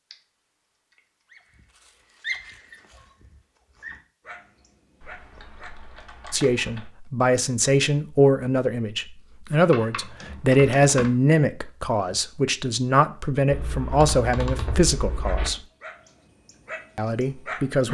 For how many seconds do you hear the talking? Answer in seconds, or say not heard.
10 s.